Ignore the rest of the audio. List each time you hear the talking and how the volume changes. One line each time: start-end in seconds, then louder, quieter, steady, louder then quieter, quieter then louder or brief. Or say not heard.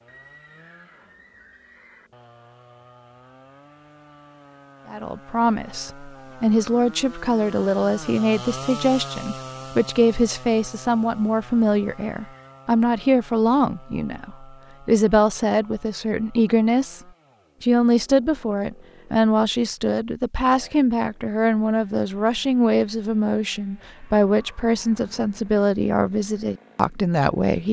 4.9-17.0 steady
17.6-27.6 steady.